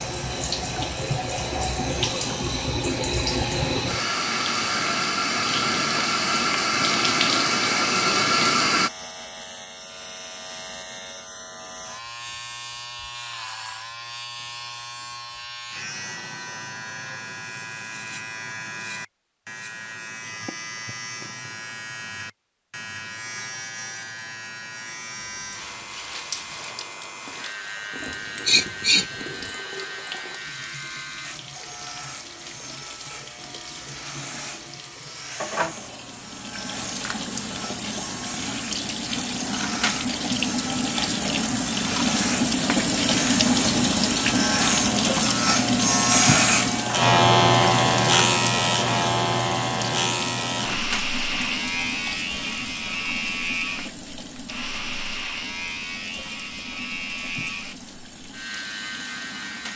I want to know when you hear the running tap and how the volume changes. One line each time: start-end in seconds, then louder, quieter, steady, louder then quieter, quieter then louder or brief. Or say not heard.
0.0-8.9 louder
25.2-59.7 louder then quieter.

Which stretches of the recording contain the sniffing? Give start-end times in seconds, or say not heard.
28.0-29.4.